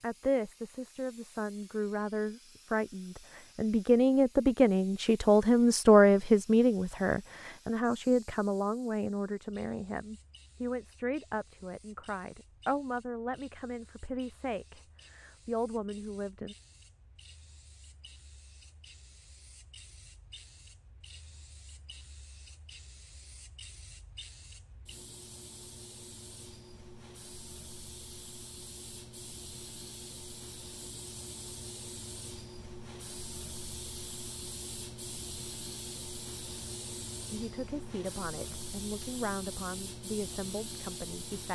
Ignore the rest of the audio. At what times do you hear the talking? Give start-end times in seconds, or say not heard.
0.0-16.6, 37.3-41.4.